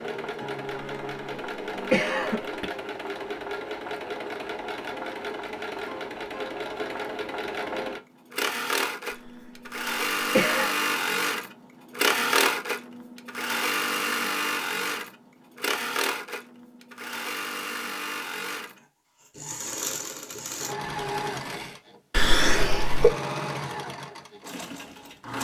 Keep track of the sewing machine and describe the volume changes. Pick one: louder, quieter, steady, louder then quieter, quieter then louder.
louder then quieter.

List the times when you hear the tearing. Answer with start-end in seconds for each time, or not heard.
20.8-21.8.